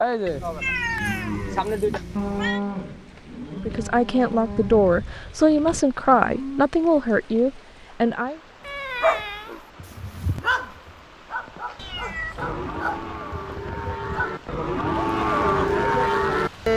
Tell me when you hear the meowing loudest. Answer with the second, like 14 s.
1 s.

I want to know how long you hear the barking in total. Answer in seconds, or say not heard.
6 s.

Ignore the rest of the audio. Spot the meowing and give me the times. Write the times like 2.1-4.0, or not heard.
0.2-2.6, 8.6-9.6, 11.8-12.6.